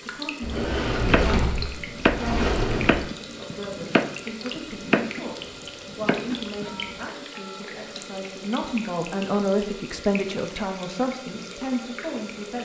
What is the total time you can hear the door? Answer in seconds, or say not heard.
3 s.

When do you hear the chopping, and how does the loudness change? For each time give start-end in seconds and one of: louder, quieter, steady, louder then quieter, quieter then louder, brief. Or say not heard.
0.9-5.2 louder then quieter
5.8-6.7 brief.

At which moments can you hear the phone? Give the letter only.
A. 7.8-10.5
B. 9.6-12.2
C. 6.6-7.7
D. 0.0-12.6
C.